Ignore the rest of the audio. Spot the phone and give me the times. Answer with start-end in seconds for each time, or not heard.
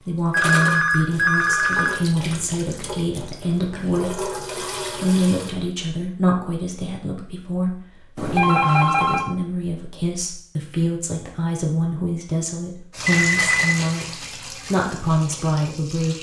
0.3-1.9, 8.2-9.3, 13.1-13.8.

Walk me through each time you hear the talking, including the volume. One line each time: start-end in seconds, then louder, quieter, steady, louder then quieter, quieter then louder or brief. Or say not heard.
0.0-16.1 steady.